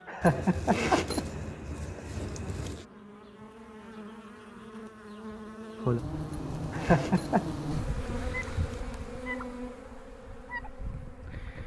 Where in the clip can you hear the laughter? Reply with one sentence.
You can hear the laughter from 0.1 to 1.2 s and from 6.7 to 7.5 s.